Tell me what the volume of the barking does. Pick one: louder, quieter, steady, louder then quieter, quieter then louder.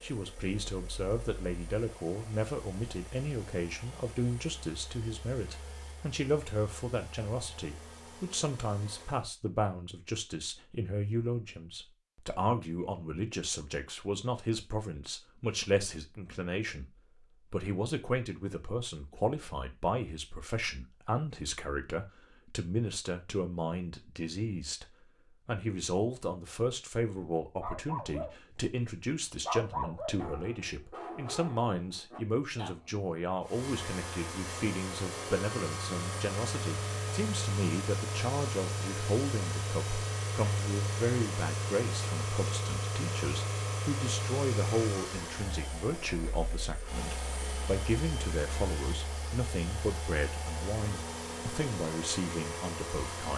louder then quieter.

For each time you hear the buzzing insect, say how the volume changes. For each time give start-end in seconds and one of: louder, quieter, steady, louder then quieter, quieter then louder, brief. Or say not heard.
not heard.